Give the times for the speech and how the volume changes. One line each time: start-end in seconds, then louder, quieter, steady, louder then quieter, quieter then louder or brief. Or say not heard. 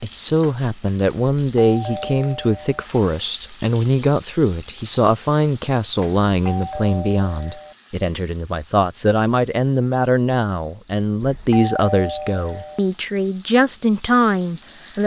0.0-15.0 steady.